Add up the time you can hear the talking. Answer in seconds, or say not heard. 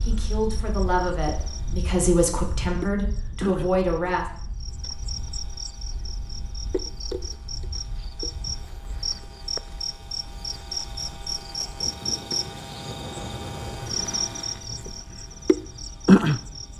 4 s.